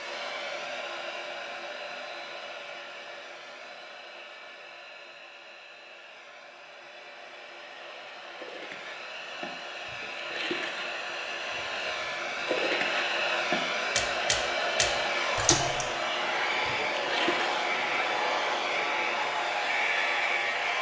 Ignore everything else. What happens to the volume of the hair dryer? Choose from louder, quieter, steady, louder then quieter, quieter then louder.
quieter then louder.